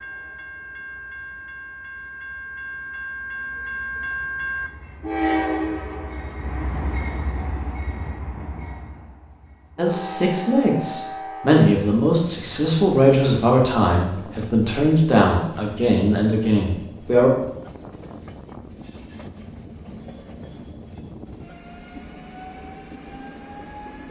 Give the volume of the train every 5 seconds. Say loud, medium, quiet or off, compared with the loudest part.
loud, loud, medium, medium, medium.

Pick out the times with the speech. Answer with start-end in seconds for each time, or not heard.
9.8-17.3.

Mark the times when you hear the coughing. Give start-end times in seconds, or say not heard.
not heard.